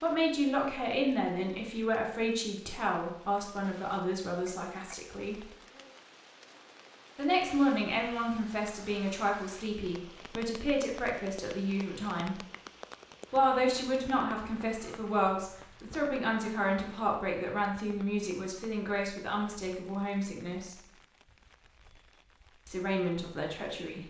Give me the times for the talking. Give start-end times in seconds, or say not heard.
0.0-5.5, 7.2-12.4, 13.3-20.8, 22.6-24.0.